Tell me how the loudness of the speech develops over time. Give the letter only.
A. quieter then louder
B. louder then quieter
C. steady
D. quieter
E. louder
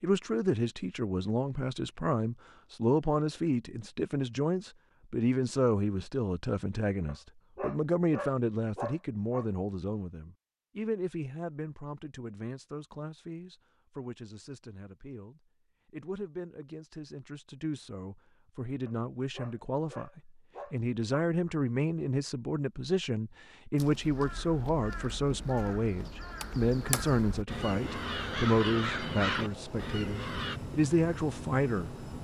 A.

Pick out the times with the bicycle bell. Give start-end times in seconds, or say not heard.
not heard.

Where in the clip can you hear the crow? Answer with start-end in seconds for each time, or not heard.
23.8-30.6.